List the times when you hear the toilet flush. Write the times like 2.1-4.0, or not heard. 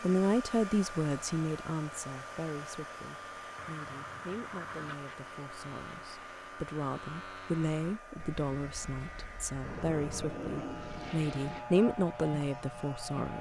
3.5-5.0, 9.6-11.7.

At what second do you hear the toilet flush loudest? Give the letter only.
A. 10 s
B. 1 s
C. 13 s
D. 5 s
A.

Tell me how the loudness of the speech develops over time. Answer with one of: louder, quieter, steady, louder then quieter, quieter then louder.
quieter then louder.